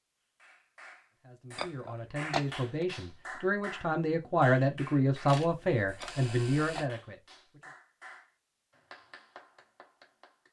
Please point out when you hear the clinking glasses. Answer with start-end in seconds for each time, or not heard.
1.6-2.9, 6.0-6.9.